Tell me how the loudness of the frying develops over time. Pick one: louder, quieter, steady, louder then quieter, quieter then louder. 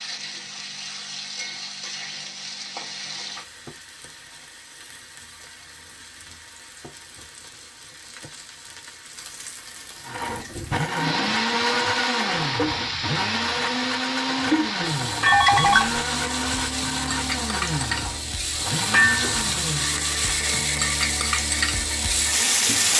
quieter then louder.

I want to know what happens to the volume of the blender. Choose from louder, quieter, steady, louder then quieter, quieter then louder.
quieter.